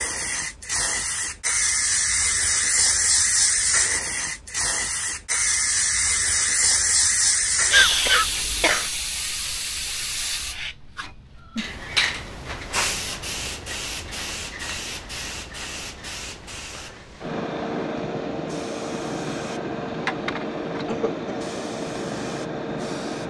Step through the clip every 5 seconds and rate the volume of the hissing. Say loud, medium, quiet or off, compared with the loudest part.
loud, loud, medium, medium, medium.